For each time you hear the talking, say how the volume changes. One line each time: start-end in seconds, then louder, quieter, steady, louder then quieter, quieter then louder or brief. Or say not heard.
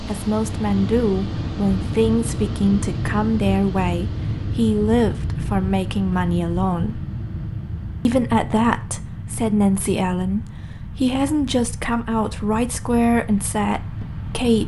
0.0-7.0 steady
8.1-14.6 steady.